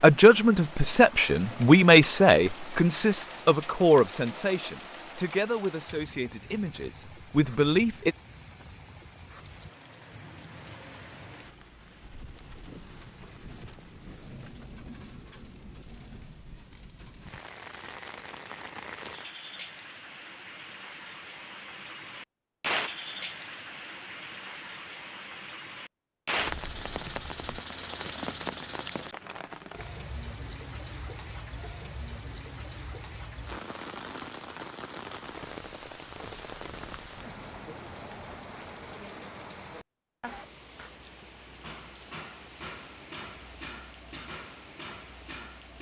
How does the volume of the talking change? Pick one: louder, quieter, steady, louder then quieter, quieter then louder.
quieter.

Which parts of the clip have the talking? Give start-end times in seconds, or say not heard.
0.0-8.2.